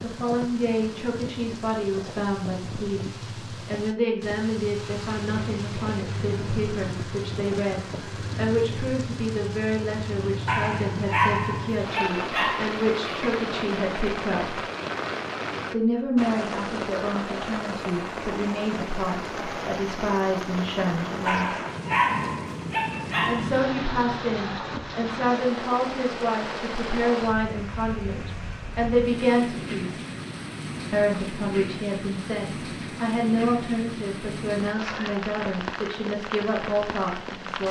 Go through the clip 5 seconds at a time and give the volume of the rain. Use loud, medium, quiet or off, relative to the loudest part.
medium, loud, loud, loud, loud, loud, loud, loud.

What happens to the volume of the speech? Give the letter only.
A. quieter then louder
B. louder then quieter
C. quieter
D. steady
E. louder
D.